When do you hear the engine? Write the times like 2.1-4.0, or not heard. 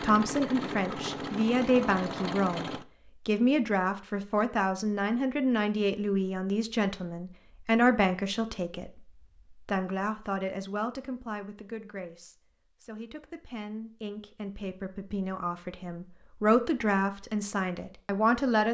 0.0-2.9.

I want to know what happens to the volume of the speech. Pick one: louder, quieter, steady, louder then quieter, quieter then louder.
quieter then louder.